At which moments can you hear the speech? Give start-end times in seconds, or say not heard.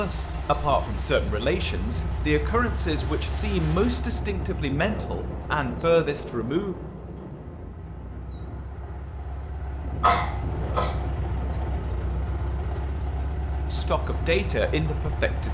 0.0-6.8, 13.7-15.4.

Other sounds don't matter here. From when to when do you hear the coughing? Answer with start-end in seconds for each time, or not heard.
10.0-10.9.